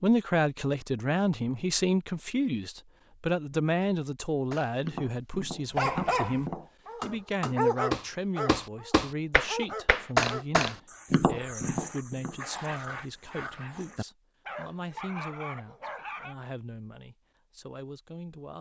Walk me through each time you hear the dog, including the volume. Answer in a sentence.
You can hear the dog from 5.7 to 16.4 s, getting quieter.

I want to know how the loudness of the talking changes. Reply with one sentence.
The volume of the talking goes down.